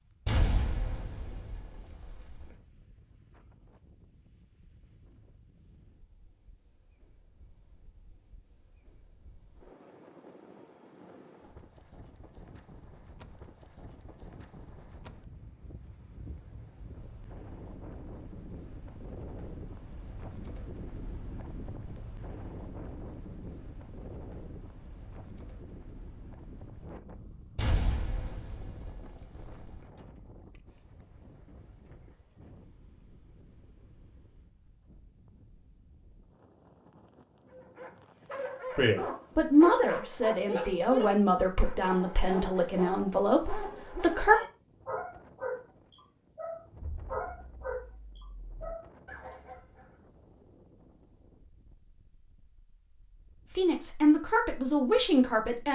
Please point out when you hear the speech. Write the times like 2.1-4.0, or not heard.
38.8-44.4, 53.5-55.7.